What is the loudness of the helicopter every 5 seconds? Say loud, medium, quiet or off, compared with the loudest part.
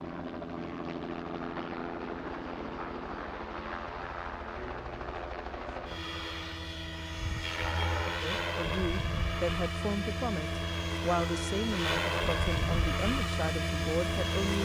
medium, loud, loud.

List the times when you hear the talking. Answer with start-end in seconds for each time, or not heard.
8.2-14.6.